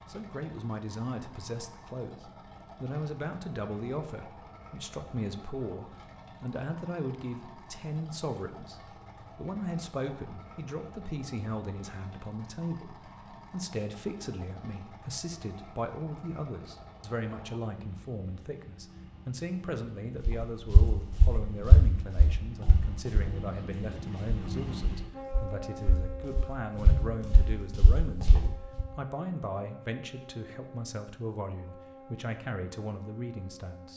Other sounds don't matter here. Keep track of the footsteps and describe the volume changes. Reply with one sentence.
The loudness of the footsteps goes down, then up.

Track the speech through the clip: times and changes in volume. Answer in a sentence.
The speech can be heard from 0.1 to 33.9 s, at a steady volume.